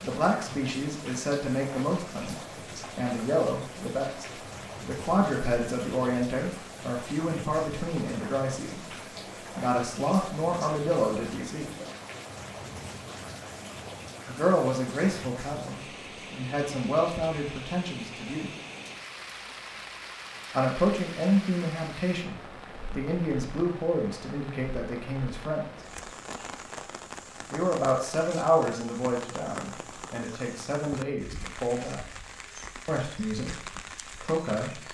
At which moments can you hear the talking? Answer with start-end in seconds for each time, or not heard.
0.0-11.7, 14.2-18.5, 20.5-25.6, 27.5-32.0, 32.9-34.8.